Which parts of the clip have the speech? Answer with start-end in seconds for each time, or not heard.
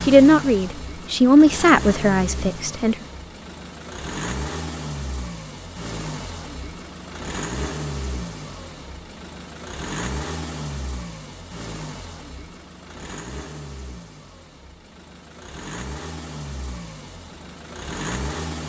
0.1-3.0.